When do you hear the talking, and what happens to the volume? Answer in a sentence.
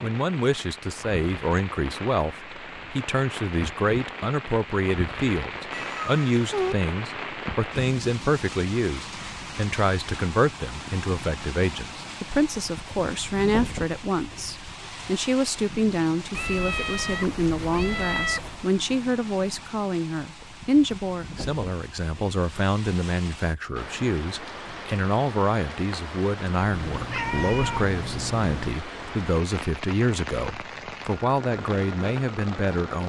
You can hear the talking from 0.0 to 33.0 s, at a steady volume.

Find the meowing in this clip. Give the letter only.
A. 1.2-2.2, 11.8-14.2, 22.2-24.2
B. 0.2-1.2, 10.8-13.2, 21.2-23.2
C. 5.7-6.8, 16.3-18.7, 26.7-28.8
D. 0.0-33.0
C.